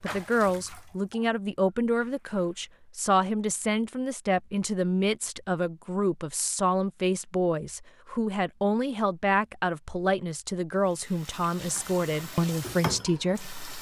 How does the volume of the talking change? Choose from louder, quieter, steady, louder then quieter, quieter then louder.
steady.